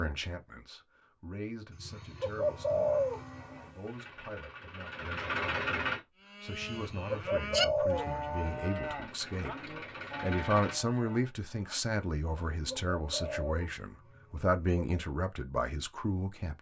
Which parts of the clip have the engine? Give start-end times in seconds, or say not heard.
2.4-6.0, 8.3-10.8.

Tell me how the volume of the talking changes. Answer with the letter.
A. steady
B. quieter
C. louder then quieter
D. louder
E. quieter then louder
D.